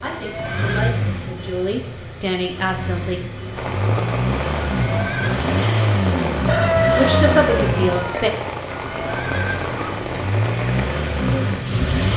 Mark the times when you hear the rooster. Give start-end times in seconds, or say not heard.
6.5-8.3.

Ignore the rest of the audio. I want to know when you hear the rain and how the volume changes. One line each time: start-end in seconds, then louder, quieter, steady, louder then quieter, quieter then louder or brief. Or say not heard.
3.5-12.1 steady.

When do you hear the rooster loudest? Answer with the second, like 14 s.
7 s.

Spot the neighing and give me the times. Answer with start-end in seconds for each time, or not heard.
0.0-0.9, 4.7-5.3, 8.7-10.0.